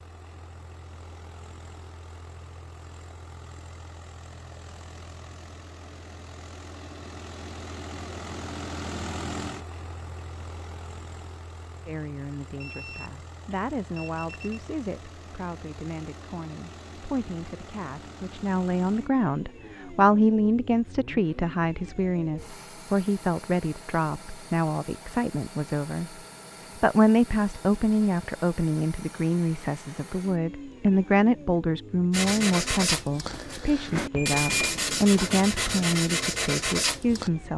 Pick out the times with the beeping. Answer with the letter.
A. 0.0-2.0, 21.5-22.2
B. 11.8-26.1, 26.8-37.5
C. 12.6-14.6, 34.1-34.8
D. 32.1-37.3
C.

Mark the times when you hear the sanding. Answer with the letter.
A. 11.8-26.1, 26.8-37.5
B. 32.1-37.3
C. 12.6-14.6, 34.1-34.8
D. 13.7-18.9
B.